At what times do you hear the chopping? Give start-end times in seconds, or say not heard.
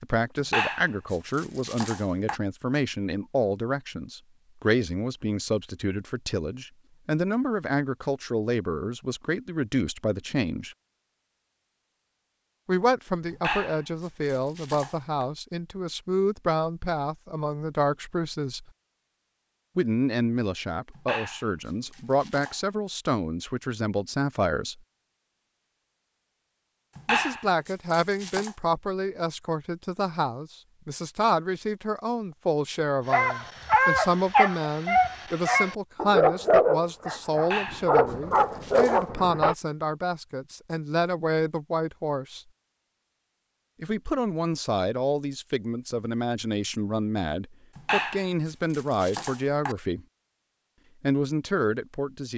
0.4-2.4, 13.3-15.2, 20.9-22.6, 26.9-28.6, 37.4-39.0, 47.8-49.8.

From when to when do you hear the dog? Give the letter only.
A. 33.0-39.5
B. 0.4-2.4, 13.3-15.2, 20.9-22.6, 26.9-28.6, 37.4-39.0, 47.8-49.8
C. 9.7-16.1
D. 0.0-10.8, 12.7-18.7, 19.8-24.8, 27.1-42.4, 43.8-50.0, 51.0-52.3
A.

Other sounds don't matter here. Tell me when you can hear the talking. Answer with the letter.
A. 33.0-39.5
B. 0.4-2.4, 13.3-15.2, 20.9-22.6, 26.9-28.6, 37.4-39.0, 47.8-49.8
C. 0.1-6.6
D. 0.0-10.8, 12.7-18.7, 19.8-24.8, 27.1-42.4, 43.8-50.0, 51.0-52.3
D.